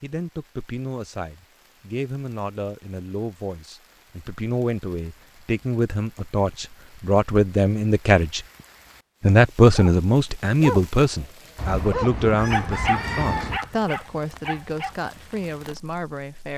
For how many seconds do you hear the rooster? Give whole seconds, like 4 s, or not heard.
2 s.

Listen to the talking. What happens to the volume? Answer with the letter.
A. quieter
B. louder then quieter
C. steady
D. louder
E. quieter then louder
B.